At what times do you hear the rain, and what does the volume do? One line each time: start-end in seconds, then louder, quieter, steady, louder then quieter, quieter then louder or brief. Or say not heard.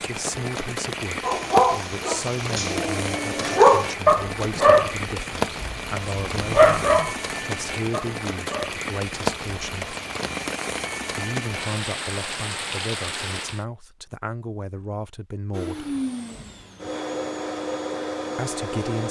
0.0-13.7 steady.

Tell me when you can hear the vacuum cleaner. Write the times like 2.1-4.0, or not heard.
15.5-19.0.